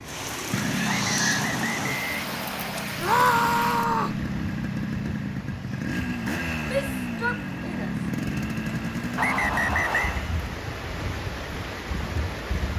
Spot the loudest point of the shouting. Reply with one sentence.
The volume of the shouting peaks at 3 seconds.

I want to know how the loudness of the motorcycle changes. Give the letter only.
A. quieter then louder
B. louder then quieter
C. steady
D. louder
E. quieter
C.